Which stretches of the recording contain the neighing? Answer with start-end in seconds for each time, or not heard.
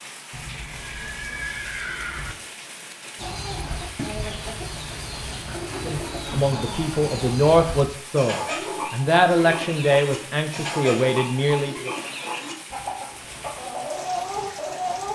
0.3-2.4.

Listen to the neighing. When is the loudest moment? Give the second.
2 s.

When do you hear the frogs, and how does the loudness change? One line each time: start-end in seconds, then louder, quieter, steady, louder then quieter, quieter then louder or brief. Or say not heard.
not heard.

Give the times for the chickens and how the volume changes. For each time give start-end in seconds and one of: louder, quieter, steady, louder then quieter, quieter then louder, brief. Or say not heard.
3.1-15.1 steady.